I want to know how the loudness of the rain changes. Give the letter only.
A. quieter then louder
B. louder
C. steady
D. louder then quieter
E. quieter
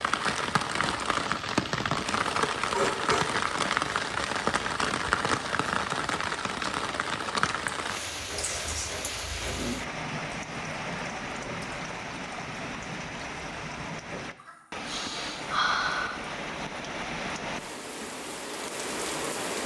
E.